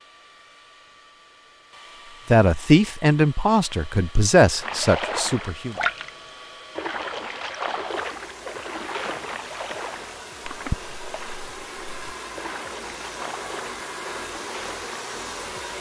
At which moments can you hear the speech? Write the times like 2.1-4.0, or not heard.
2.3-5.8.